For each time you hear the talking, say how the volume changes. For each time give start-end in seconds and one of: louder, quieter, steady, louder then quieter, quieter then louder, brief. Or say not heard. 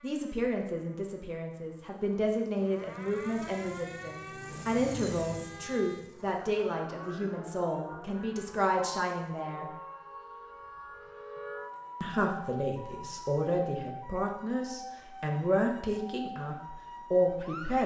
0.0-9.7 steady
12.0-17.8 louder.